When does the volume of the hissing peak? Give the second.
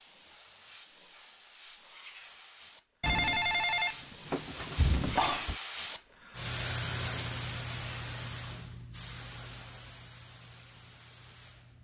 7 s.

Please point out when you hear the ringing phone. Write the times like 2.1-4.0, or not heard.
3.0-5.5.